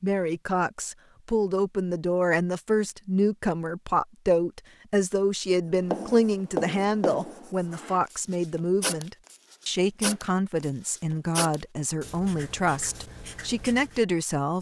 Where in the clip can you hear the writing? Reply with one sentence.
You can hear the writing from 5.8 to 14.0 s.